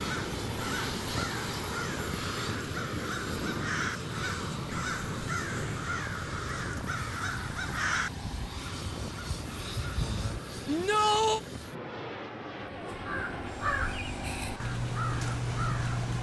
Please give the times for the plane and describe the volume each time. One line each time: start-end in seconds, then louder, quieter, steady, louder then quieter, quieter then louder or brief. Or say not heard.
0.0-16.1 quieter.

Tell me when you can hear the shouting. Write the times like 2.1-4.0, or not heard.
10.7-11.4.